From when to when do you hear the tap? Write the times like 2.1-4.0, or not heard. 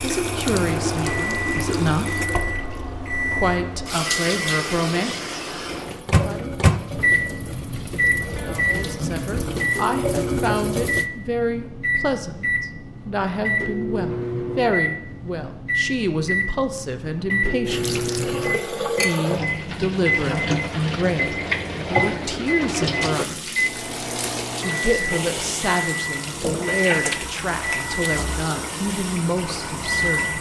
0.0-11.1, 17.6-30.3.